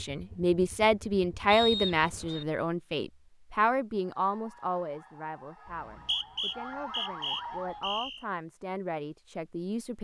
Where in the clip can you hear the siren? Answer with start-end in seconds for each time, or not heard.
4.2-7.8.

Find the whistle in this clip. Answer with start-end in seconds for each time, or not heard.
1.5-2.5, 5.7-8.2.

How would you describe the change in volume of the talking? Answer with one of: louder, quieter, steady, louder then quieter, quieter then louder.
quieter then louder.